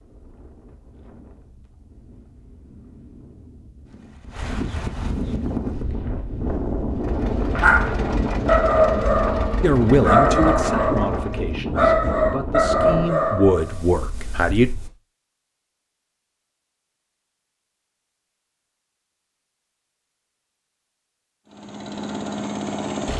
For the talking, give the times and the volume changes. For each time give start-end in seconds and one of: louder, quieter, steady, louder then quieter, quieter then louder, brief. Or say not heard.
9.6-14.7 quieter then louder.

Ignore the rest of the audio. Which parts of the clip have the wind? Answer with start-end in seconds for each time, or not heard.
0.0-14.9.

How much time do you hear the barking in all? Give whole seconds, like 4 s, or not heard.
6 s.